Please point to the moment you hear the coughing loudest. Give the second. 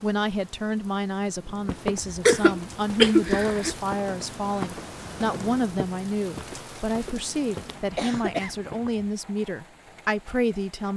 3 s.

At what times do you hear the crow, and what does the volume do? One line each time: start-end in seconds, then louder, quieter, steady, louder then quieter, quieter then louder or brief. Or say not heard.
not heard.